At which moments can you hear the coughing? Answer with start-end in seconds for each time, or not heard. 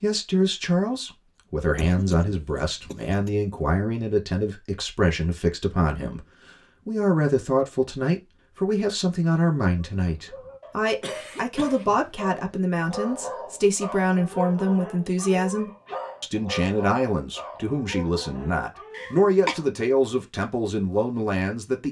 1.6-3.3, 11.0-12.1, 18.9-19.6.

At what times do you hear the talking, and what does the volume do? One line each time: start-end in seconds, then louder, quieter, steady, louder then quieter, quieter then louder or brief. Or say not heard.
0.0-21.8 steady.